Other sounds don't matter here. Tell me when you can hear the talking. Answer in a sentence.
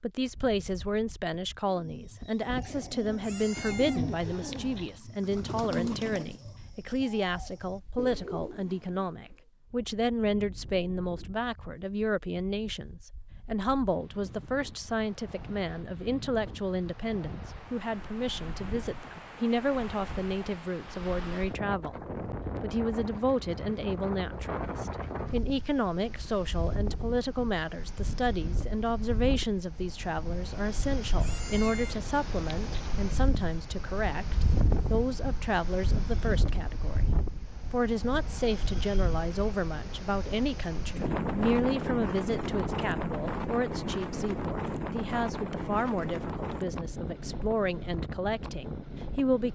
The talking can be heard from 0.0 to 37.1 s and from 37.7 to 49.4 s.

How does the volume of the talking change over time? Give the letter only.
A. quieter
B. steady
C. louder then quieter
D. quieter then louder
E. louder
B.